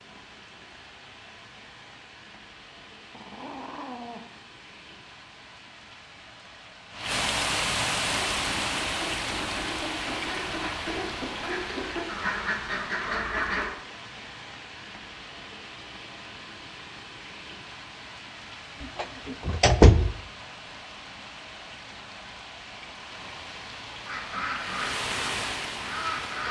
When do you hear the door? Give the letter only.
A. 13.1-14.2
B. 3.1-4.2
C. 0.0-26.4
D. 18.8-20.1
D.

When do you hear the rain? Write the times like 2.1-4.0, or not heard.
0.0-26.4.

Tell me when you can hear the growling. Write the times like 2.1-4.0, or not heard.
3.1-4.2.